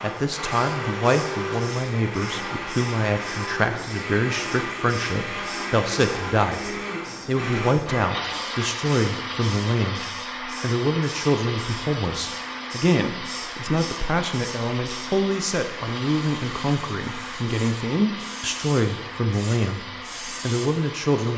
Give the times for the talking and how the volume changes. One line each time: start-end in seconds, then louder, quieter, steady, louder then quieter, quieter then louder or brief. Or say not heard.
0.0-21.3 steady.